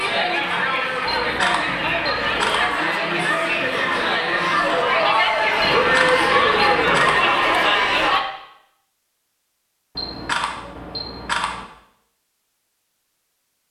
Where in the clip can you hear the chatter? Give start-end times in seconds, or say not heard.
0.0-8.2.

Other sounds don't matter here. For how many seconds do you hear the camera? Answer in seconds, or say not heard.
5 s.